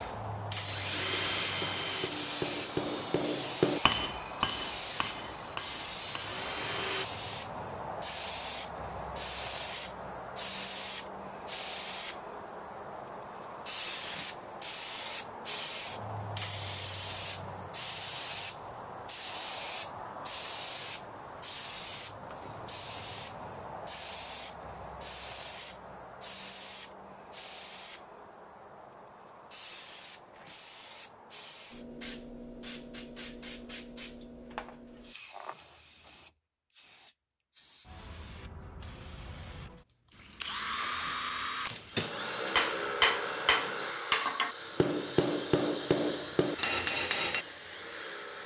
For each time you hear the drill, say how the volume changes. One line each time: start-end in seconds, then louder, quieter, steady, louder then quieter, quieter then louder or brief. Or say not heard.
0.0-7.0 quieter then louder
40.1-48.4 quieter.